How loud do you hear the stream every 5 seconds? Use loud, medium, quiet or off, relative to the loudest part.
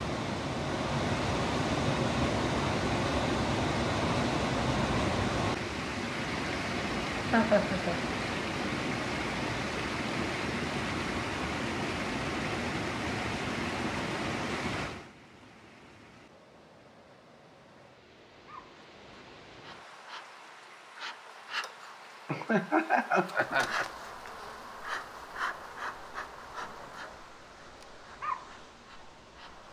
loud, loud, loud, quiet, quiet, quiet.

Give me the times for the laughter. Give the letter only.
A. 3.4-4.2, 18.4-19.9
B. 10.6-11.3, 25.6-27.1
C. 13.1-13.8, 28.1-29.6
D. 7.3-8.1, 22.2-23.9
D.